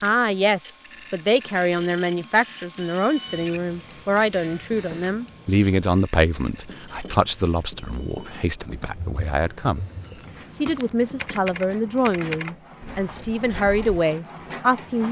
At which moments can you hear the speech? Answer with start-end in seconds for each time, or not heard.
0.0-9.8, 10.5-15.0.